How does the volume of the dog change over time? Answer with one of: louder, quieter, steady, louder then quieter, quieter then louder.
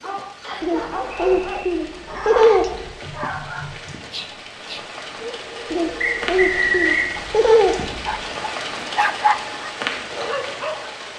quieter then louder.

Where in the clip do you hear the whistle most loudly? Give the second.
7 s.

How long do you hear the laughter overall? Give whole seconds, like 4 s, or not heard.
5 s.